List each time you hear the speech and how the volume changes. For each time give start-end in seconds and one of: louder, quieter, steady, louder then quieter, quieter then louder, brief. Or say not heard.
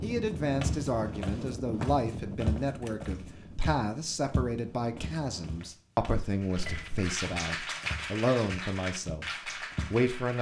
0.0-10.3 steady.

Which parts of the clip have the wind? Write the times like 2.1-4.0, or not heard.
0.0-5.7.